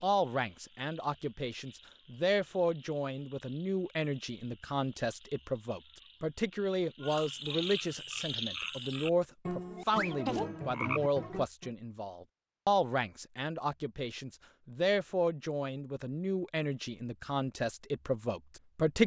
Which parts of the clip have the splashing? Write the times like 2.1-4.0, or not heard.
not heard.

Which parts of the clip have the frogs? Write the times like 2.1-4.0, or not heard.
0.1-11.7.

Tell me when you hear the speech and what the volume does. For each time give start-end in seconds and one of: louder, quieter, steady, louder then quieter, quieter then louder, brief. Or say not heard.
0.0-19.0 steady.